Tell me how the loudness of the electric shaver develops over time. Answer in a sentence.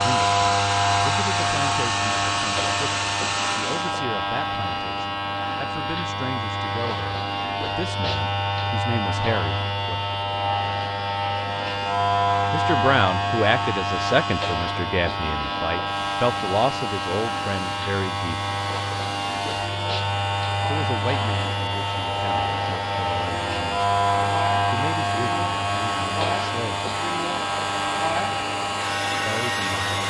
The loudness of the electric shaver stays about the same.